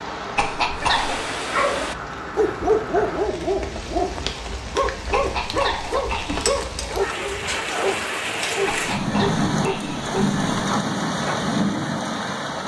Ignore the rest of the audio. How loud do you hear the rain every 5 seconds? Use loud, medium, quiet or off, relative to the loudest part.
medium, loud, loud.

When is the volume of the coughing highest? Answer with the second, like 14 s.
1 s.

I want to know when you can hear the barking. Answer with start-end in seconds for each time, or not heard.
0.8-11.4.